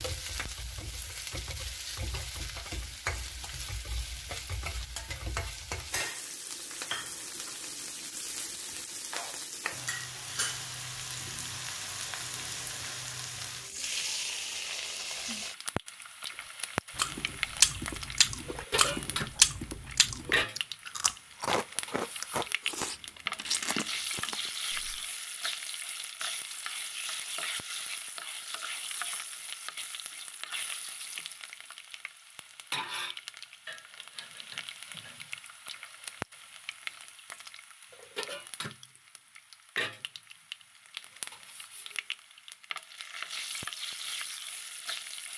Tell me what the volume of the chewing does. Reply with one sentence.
The loudness of the chewing goes down.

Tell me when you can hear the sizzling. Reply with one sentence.
You can hear the sizzling from 0.0 to 45.3 s.